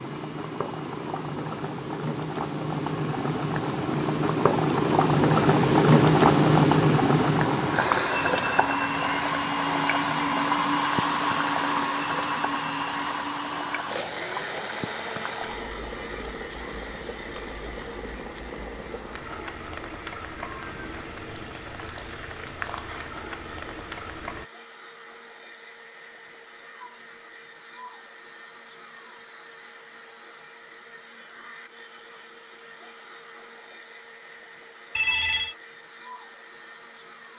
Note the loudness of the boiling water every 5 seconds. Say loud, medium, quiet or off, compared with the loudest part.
medium, loud, quiet, quiet, quiet, off, off, off.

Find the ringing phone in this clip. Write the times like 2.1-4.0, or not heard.
35.0-35.5.